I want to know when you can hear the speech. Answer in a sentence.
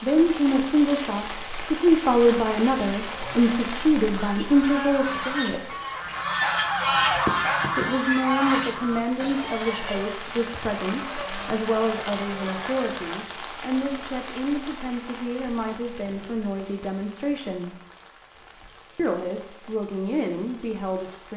You can hear the speech from 0.0 to 5.8 s, from 7.8 to 17.8 s and from 18.9 to 21.3 s.